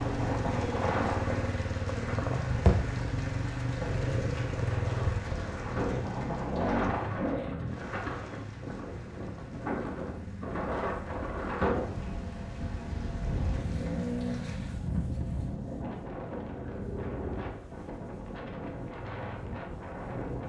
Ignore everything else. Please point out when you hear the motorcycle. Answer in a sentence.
The motorcycle can be heard from 0.0 to 20.4 s.